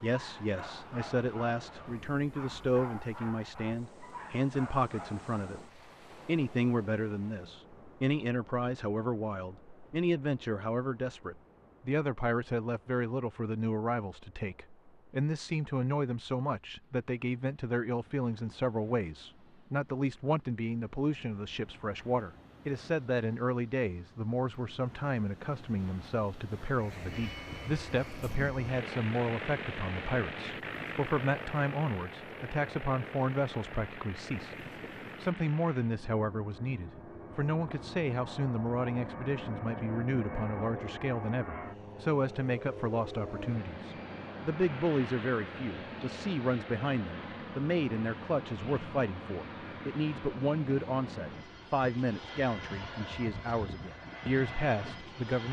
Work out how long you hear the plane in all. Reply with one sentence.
You can hear the plane for 29 seconds altogether.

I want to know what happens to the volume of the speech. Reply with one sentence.
The loudness of the speech stays about the same.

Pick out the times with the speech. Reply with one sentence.
The speech can be heard from 0.0 to 5.6 s and from 6.2 to 55.4 s.